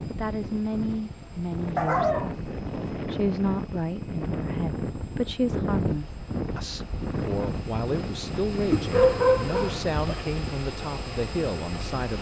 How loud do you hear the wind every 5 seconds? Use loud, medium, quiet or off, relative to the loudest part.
loud, loud, medium.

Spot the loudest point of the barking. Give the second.
9 s.